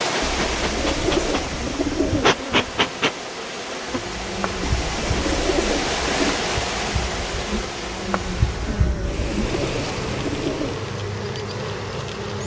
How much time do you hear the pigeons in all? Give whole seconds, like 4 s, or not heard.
6 s.